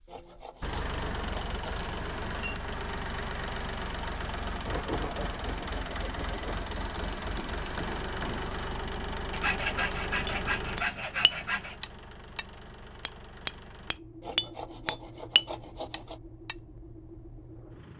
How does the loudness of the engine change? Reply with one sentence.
The loudness of the engine goes down.